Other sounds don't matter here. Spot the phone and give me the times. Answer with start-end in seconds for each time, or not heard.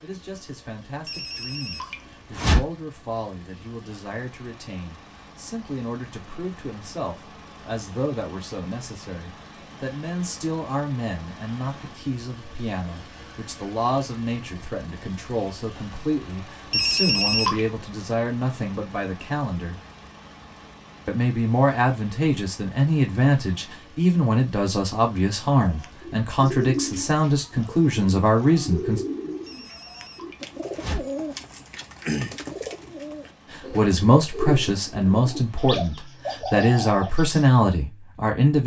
1.1-2.6, 16.7-17.6, 29.4-31.0.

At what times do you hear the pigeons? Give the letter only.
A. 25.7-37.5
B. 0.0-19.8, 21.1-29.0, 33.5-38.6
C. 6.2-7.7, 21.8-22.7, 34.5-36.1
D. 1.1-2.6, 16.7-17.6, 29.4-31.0
A.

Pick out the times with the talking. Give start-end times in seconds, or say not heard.
0.0-19.8, 21.1-29.0, 33.5-38.6.